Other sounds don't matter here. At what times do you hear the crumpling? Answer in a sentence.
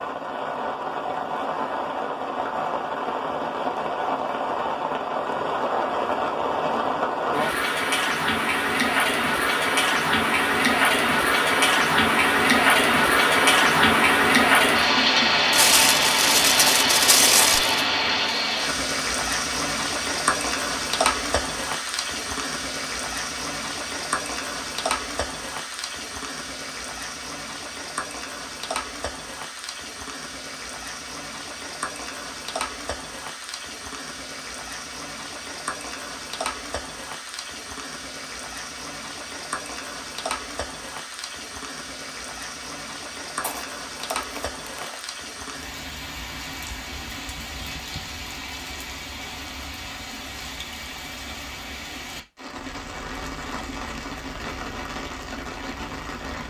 You can hear the crumpling from 15.5 to 17.9 s and from 43.4 to 45.0 s.